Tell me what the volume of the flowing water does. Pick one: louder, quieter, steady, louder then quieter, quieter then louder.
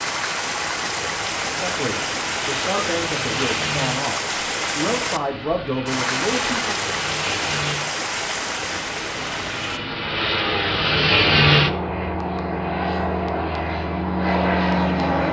steady.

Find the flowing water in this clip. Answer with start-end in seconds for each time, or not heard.
0.0-9.8.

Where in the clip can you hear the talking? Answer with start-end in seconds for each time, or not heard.
1.5-6.8.